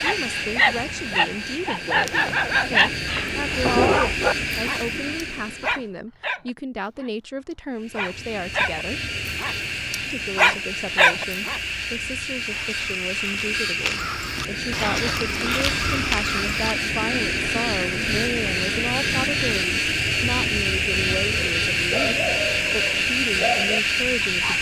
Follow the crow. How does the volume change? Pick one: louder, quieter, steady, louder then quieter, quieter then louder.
louder.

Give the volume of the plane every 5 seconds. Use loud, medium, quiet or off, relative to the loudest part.
medium, medium, medium, loud, loud.